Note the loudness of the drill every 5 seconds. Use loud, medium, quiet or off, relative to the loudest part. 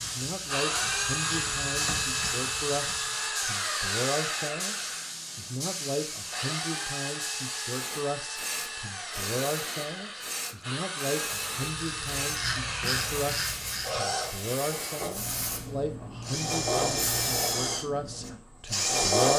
loud, medium, medium, loud.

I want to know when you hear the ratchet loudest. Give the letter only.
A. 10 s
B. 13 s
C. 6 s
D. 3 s
B.